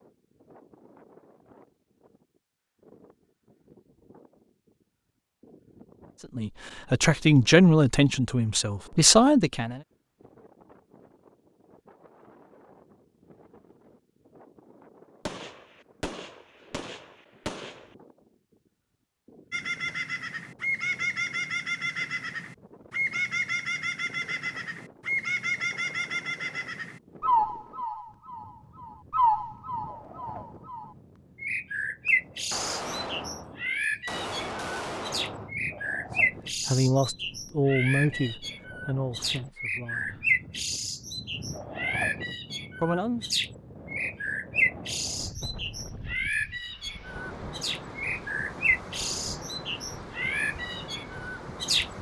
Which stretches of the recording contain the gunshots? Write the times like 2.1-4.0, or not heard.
15.2-17.9, 32.0-35.5.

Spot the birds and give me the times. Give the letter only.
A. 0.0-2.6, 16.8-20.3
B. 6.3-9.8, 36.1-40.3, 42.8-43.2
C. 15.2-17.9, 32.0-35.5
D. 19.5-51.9
D.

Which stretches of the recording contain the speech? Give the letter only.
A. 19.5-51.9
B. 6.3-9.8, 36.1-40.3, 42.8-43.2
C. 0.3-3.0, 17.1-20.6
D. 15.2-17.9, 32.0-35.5
B.